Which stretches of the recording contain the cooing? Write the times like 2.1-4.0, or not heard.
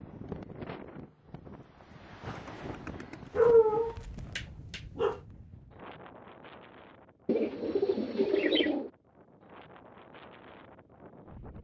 2.3-3.9, 7.2-8.9.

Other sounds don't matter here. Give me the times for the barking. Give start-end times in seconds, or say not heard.
3.4-5.2.